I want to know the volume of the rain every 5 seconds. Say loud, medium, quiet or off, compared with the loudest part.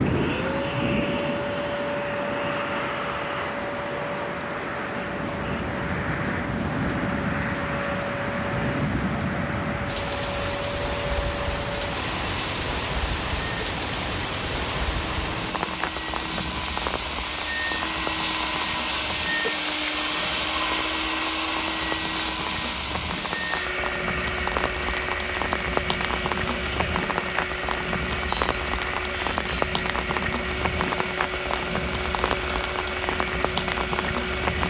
loud, loud, loud, medium, medium, loud, loud.